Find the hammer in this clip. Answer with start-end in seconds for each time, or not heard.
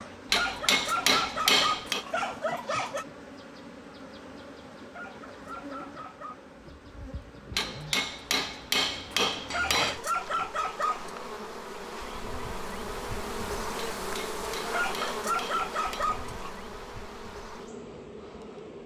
0.3-2.0, 7.5-10.0, 14.0-16.1.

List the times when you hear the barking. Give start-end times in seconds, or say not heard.
0.3-3.0, 4.9-6.4, 9.5-11.2, 14.7-16.5.